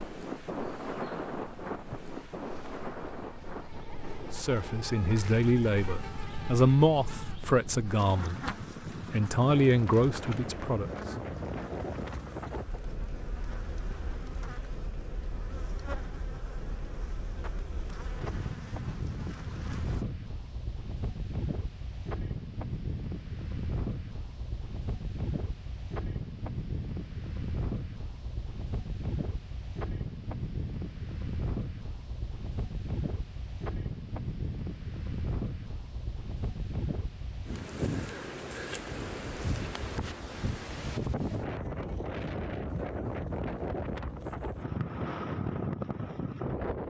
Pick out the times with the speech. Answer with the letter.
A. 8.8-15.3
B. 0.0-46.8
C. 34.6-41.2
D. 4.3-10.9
D.